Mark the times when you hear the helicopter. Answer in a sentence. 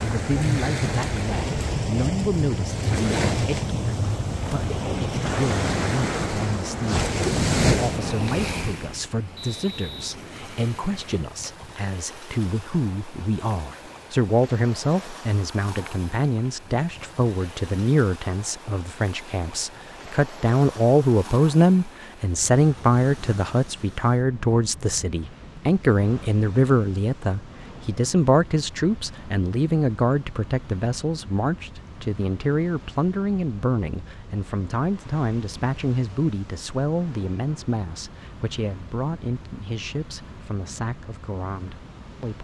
The helicopter can't be heard in this clip.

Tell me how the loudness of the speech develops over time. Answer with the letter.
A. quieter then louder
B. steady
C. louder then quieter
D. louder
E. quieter
C.